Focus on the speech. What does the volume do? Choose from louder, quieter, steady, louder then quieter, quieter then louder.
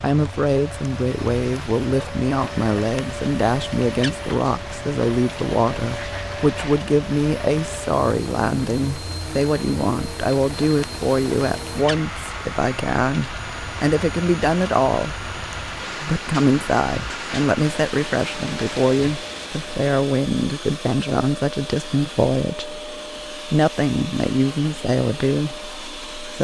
steady.